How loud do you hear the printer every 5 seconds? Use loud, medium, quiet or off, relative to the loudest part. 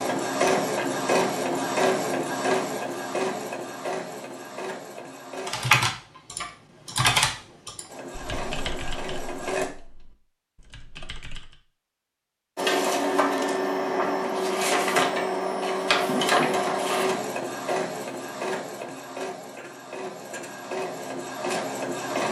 loud, medium, loud, loud, medium.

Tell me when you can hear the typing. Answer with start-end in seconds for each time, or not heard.
5.5-11.6.